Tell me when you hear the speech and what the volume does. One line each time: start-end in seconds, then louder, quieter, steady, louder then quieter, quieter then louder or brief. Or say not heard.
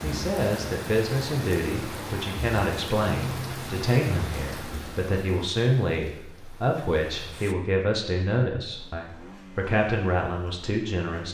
0.0-11.3 steady.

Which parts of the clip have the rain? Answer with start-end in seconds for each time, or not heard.
0.0-7.5.